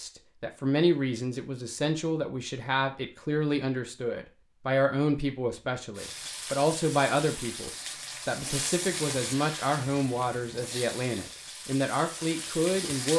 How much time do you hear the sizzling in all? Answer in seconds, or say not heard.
7 s.